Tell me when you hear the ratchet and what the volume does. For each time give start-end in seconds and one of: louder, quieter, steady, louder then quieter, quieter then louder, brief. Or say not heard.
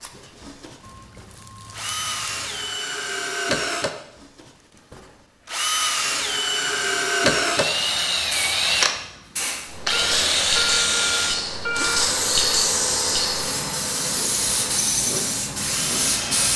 not heard.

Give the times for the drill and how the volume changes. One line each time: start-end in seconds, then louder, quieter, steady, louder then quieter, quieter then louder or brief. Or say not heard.
0.0-16.5 louder then quieter.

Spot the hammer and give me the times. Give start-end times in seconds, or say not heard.
not heard.